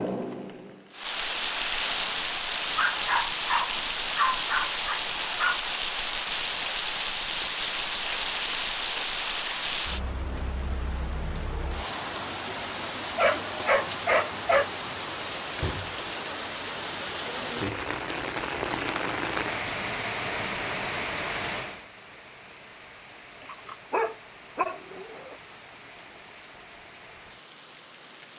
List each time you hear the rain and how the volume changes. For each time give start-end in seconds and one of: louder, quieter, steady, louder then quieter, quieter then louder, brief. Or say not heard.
0.0-28.3 quieter.